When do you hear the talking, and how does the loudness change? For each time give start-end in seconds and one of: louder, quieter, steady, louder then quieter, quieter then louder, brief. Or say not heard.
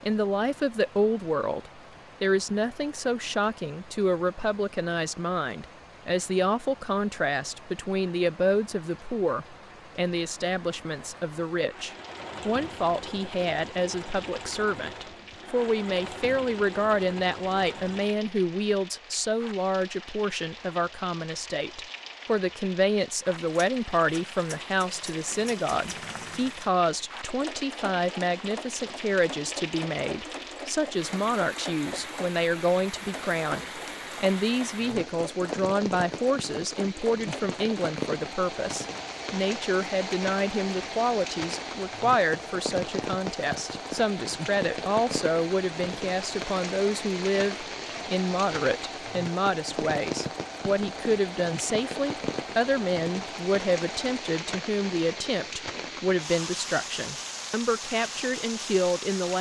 0.0-59.3 steady.